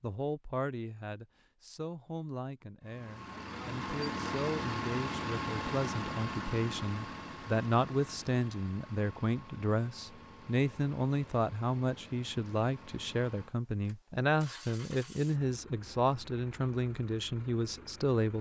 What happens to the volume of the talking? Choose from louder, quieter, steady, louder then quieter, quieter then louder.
louder.